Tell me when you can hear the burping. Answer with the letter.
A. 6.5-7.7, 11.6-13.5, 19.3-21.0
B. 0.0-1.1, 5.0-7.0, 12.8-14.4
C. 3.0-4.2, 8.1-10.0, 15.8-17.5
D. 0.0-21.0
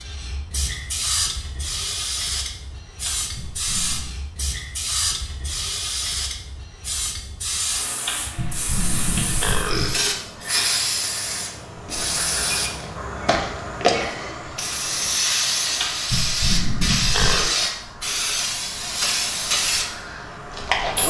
C.